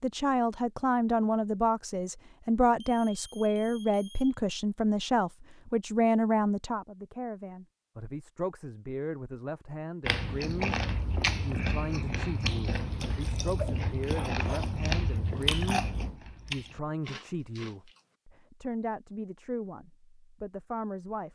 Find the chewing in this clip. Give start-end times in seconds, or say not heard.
10.0-18.0.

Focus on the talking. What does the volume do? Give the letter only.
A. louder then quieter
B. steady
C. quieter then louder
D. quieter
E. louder
D.